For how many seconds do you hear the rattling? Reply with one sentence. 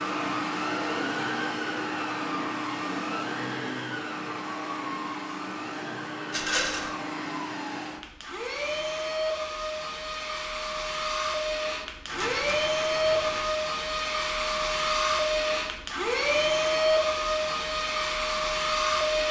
The rattling can be heard for 2 seconds in total.